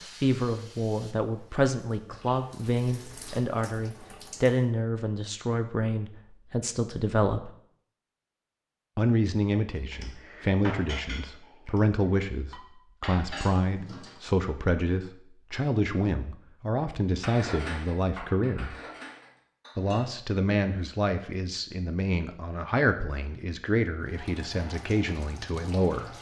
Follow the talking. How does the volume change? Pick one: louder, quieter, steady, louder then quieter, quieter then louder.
steady.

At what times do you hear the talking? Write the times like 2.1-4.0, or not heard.
0.0-7.5, 8.9-18.8, 19.8-26.1.